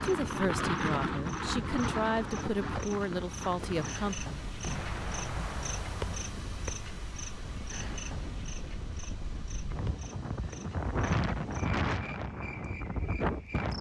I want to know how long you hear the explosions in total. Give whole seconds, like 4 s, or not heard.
2 s.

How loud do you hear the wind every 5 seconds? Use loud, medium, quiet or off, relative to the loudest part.
loud, medium, loud.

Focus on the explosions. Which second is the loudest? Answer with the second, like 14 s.
5 s.